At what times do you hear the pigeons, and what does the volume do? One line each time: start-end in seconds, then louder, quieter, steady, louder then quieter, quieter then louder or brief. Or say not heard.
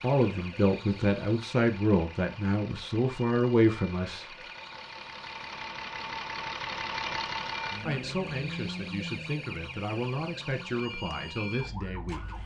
not heard.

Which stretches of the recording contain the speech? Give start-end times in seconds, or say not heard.
0.0-4.2, 7.8-12.3.